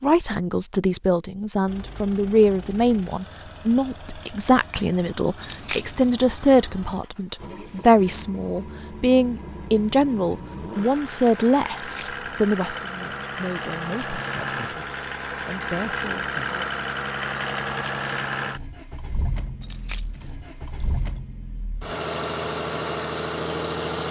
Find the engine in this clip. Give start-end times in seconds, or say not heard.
1.6-24.0.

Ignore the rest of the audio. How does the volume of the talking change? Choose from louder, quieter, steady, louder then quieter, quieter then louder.
quieter.